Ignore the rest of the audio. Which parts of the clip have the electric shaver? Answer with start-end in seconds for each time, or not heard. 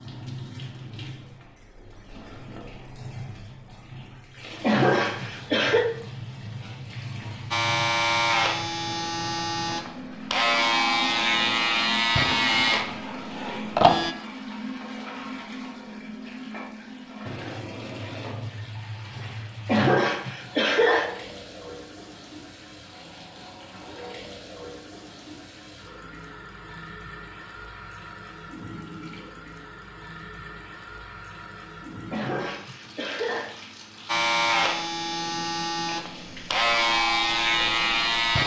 7.5-14.2, 34.0-38.4.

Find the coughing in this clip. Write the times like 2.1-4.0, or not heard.
4.6-5.8, 19.6-21.1, 32.1-33.5.